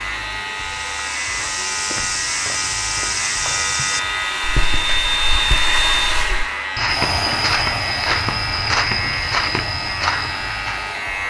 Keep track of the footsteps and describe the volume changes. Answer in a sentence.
The volume of the footsteps goes down, then up.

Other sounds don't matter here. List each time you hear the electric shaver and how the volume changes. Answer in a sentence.
You can hear the electric shaver from 0.0 to 11.2 s, at a steady volume.